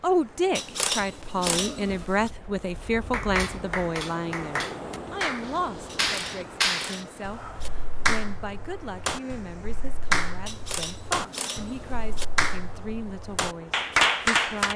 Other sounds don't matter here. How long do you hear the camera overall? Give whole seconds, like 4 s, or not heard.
5 s.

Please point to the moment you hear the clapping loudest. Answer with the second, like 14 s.
14 s.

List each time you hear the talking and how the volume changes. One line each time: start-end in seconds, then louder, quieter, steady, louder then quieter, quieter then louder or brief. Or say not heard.
0.0-14.7 quieter.